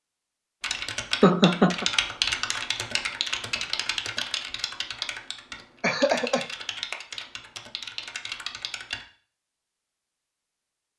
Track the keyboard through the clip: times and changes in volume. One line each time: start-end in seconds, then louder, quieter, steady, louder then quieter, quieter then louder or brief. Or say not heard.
0.6-9.1 quieter.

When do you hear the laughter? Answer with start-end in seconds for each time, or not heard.
1.2-1.9, 5.8-6.5.